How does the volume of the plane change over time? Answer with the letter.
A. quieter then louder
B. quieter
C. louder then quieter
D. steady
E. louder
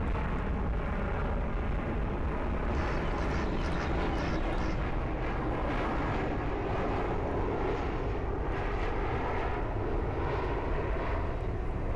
D.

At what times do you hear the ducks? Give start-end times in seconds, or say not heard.
2.7-4.8.